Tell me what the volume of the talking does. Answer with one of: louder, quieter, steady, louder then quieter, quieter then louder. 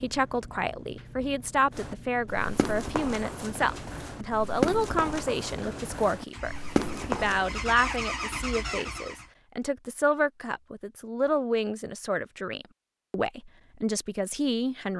steady.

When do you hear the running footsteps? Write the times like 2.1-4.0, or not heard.
1.8-7.6.